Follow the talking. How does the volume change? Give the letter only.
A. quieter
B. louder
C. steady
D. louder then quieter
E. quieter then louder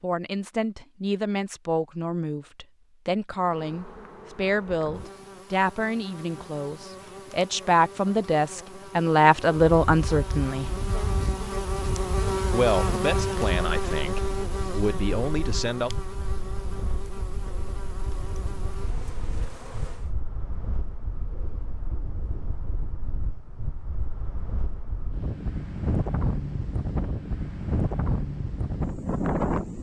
D.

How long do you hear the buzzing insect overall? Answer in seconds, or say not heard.
17 s.